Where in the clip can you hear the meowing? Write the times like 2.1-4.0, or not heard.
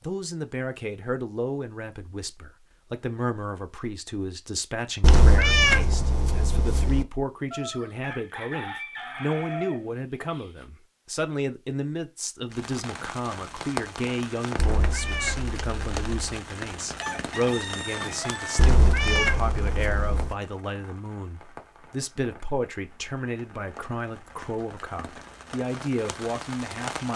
5.0-7.0, 14.6-16.4, 18.6-20.4.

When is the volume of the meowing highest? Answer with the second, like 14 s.
6 s.